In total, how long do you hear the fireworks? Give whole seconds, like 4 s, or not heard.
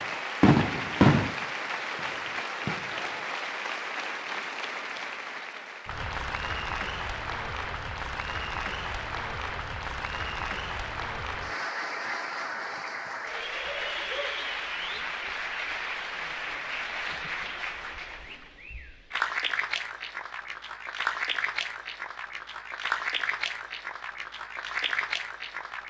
3 s.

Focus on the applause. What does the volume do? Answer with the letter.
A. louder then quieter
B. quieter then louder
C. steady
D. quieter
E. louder
C.